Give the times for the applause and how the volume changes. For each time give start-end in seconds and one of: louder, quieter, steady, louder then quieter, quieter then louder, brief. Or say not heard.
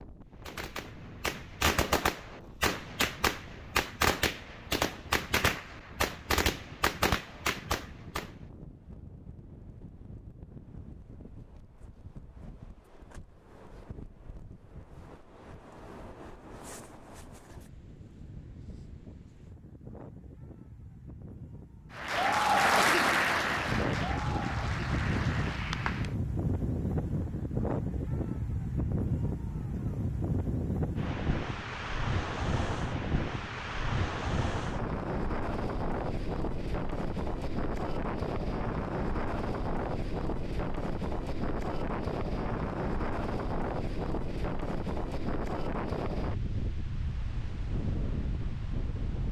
21.9-26.1 quieter.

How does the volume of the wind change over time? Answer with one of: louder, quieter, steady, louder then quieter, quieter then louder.
louder.